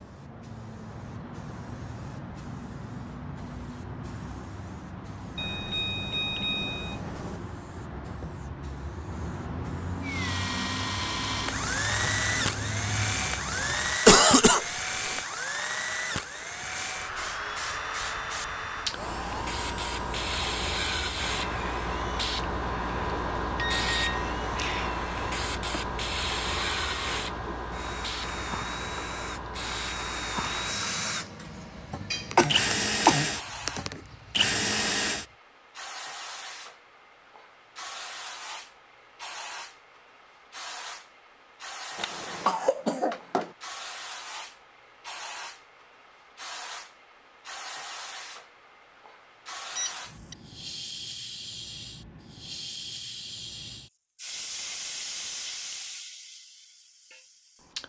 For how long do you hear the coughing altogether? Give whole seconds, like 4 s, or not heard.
4 s.